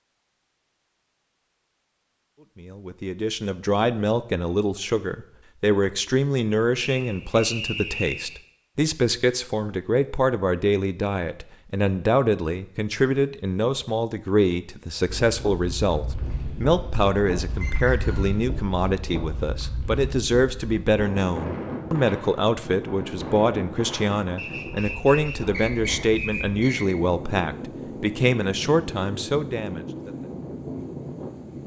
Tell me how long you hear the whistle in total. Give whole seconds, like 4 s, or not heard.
5 s.